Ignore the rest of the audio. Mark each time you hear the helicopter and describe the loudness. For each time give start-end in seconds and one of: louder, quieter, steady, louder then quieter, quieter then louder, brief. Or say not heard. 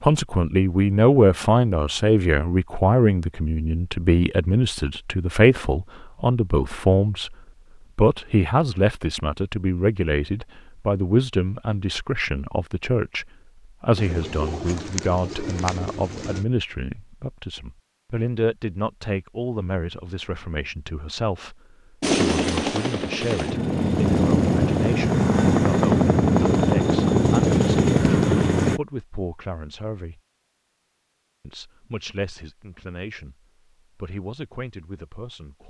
22.0-28.8 louder.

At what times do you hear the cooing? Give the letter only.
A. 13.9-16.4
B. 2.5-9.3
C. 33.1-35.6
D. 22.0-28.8
A.